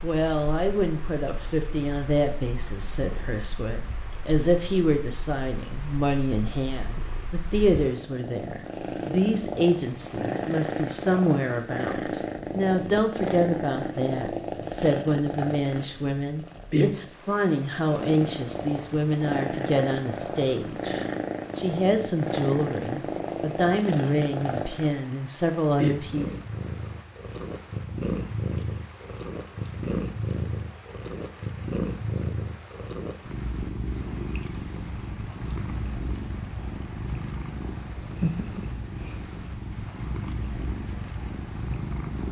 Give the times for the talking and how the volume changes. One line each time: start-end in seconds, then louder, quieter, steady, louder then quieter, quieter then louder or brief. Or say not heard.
0.0-26.4 steady.